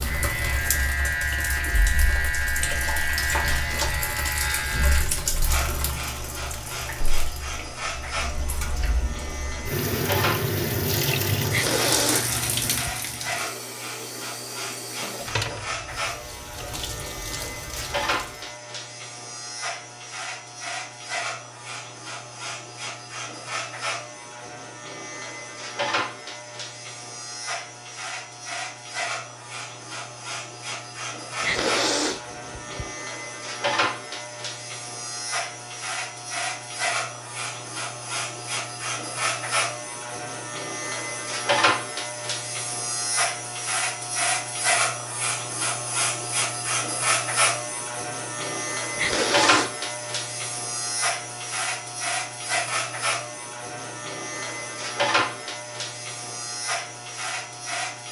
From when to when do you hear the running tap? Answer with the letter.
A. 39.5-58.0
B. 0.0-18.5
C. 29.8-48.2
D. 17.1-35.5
B.